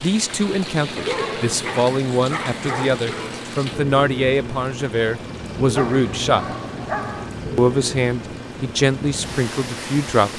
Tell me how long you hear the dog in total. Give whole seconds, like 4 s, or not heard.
4 s.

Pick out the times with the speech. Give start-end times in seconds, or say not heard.
0.0-6.5, 7.5-10.3.